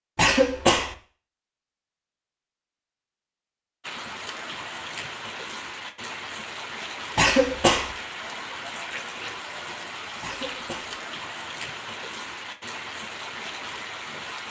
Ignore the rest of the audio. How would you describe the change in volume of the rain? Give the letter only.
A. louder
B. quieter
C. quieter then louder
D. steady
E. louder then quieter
D.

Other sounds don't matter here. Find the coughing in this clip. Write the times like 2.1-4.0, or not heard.
0.1-0.9, 7.2-8.0, 10.2-11.0.